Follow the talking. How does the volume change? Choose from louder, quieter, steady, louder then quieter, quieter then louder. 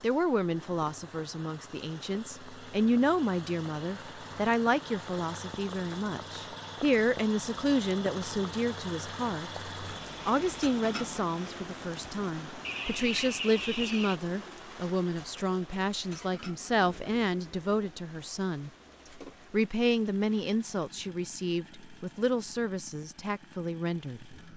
steady.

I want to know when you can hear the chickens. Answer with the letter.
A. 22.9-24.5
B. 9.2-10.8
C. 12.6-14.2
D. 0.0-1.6
C.